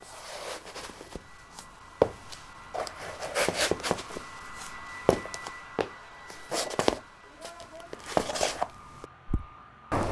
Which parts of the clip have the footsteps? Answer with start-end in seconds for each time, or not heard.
0.0-10.0.